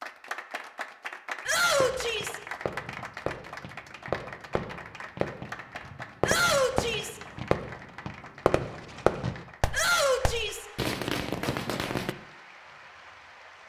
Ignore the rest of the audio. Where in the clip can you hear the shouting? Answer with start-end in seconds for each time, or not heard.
1.4-2.4, 6.2-7.2, 9.7-10.7.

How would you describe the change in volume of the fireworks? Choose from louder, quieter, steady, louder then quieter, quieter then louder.
louder.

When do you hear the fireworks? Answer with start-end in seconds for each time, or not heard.
1.6-12.2.